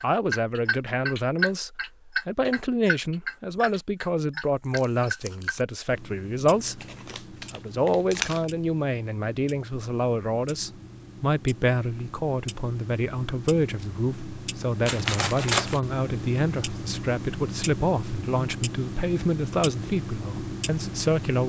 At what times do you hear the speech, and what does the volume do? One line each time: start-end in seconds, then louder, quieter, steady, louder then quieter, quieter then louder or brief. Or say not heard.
0.0-21.4 steady.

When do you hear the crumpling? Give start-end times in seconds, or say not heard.
6.8-8.4, 14.8-15.8.